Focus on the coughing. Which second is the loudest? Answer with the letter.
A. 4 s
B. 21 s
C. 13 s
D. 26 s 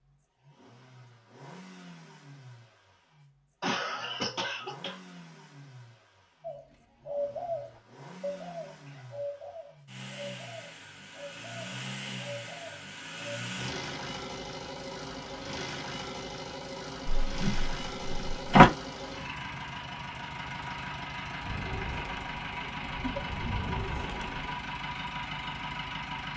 A.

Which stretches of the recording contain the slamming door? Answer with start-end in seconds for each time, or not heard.
17.1-18.6.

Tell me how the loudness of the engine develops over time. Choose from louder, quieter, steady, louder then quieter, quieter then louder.
louder.